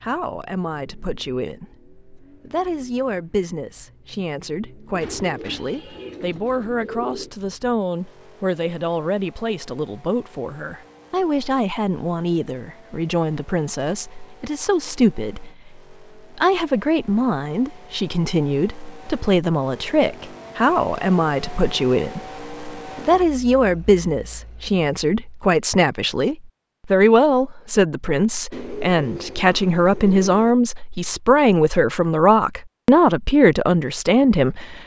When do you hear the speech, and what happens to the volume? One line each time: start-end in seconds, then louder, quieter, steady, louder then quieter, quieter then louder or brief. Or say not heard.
0.0-34.8 louder.